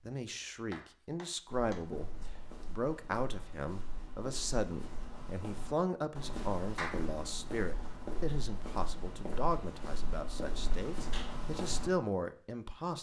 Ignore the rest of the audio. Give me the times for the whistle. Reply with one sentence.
You can't hear the whistle here.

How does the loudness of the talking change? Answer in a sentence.
The loudness of the talking stays about the same.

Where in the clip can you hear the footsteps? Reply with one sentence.
You can hear the footsteps from 1.4 to 11.9 s.